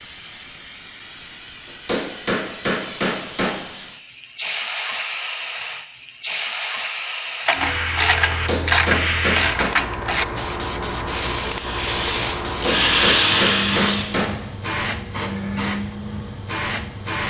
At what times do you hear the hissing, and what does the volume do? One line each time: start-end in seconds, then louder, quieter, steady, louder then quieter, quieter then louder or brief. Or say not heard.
0.0-17.2 louder.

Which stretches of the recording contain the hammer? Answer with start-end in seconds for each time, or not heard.
1.6-3.6, 8.2-9.8, 12.6-14.4.